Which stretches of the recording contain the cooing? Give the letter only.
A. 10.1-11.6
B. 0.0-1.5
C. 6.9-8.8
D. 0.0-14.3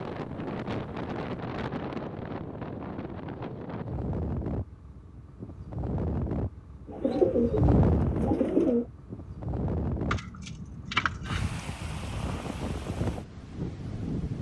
C.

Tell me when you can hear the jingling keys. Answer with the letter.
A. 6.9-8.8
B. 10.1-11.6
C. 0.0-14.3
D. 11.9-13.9
B.